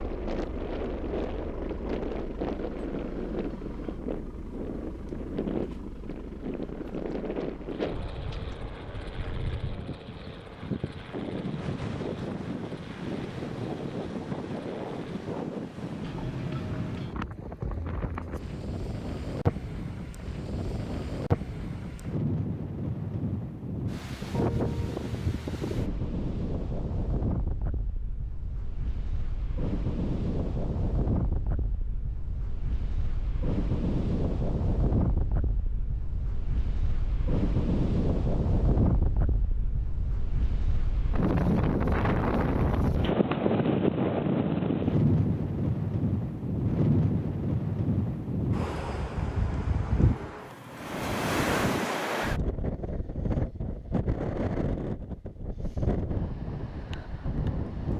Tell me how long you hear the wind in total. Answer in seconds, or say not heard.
58 s.